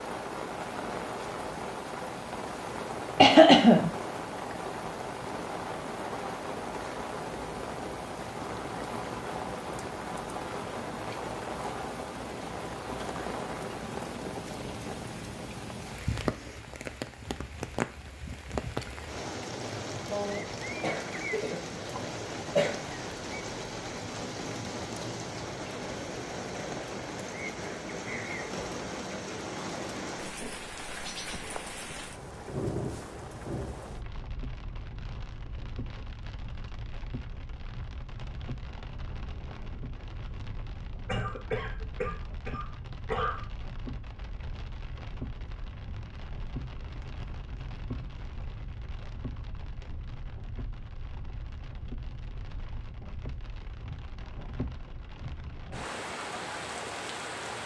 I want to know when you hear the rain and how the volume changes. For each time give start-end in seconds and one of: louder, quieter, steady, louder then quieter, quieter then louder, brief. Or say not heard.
0.0-57.6 quieter.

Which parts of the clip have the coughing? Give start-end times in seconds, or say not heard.
3.1-3.9, 20.1-22.8, 41.0-43.4.